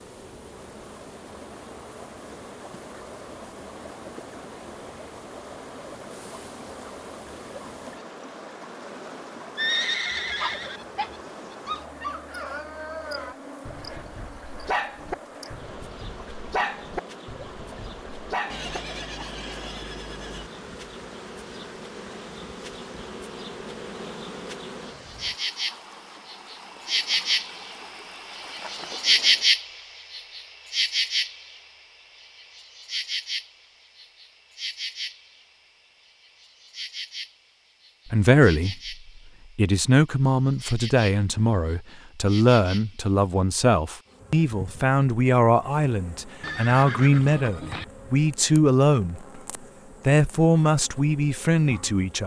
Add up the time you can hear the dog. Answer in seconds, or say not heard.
9 s.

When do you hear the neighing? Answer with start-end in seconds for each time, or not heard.
9.6-10.8, 18.5-20.5, 46.4-47.9.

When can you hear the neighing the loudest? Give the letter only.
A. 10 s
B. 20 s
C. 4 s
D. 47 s
A.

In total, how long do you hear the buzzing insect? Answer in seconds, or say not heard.
52 s.